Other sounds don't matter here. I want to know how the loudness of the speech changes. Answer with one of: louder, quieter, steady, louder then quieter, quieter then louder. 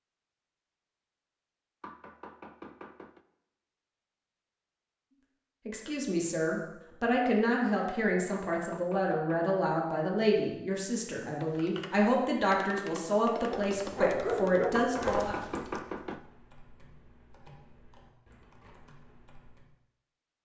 steady.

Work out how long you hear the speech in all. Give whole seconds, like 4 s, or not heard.
10 s.